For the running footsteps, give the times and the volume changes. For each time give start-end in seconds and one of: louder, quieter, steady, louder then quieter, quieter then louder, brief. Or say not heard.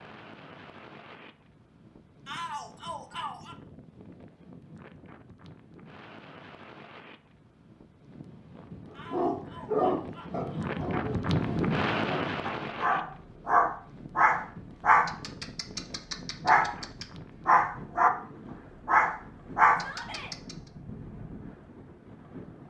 not heard.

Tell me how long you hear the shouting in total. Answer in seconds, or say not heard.
4 s.